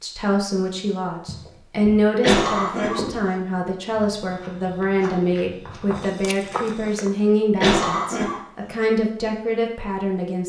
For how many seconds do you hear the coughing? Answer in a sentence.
The coughing can be heard for 2 seconds in total.